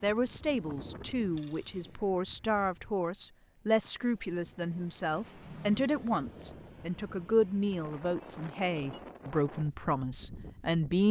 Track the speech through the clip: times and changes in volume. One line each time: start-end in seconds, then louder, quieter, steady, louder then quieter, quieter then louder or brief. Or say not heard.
0.0-11.0 steady.